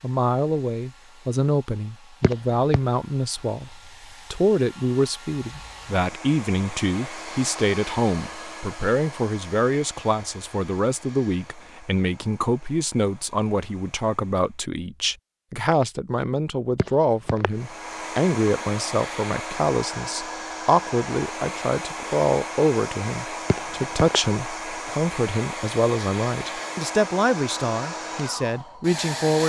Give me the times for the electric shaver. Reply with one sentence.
The electric shaver can't be heard in this clip.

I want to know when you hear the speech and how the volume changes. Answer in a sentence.
You can hear the speech from 0.0 to 29.4 s, at a steady volume.